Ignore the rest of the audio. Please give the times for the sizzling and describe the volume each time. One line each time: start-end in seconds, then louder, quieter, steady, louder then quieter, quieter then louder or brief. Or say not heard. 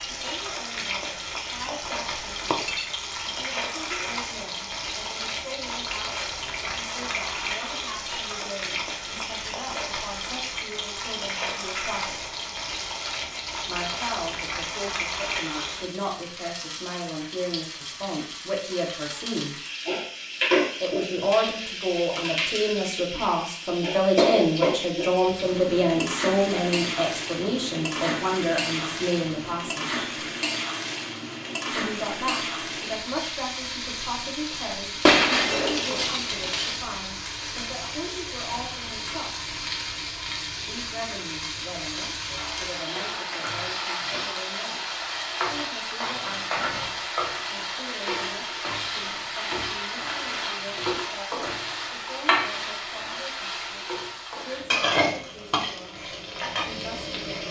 0.0-57.4 steady.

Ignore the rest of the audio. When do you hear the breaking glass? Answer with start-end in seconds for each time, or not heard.
2.5-3.0, 35.0-36.8.